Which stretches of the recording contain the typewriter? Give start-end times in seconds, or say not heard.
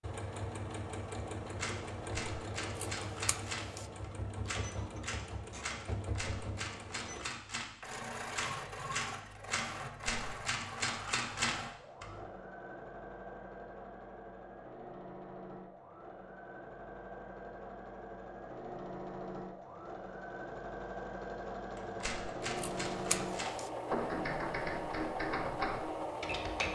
1.6-12.1, 21.8-26.7.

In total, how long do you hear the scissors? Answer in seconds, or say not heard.
2 s.